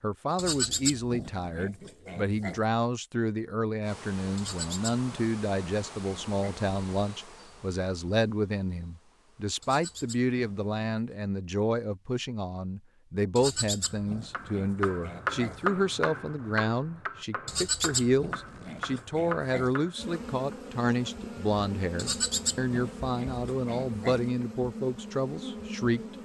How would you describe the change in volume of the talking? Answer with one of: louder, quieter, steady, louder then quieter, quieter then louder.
steady.